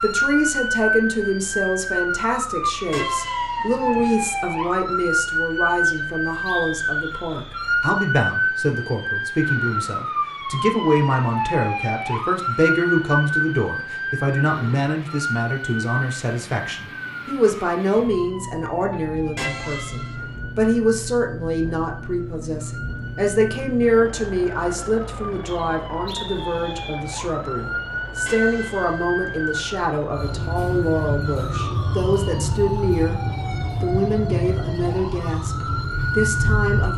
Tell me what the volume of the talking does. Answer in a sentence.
The volume of the talking stays about the same.